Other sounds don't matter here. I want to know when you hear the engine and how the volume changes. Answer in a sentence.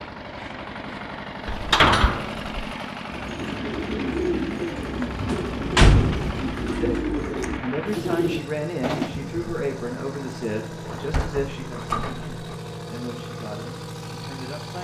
You can hear the engine from 0.0 to 14.7 s, at a steady volume.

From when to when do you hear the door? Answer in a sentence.
You can hear the door from 1.4 to 2.6 s, from 5.2 to 6.8 s and from 10.8 to 12.6 s.